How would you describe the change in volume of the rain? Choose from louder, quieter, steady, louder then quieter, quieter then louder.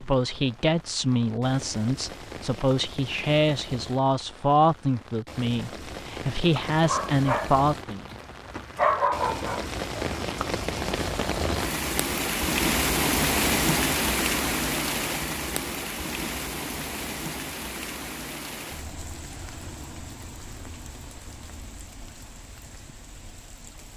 louder then quieter.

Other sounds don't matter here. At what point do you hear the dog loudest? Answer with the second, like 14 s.
9 s.